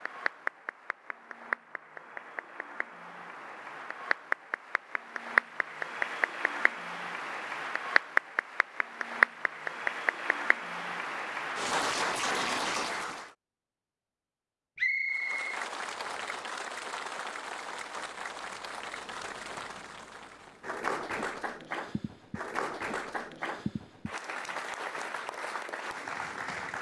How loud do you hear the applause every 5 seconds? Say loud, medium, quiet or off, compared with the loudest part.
medium, loud, loud, medium, medium, medium.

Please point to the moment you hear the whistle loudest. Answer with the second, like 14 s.
15 s.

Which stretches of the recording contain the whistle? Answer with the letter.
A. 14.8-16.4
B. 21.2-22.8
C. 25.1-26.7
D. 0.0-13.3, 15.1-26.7
A.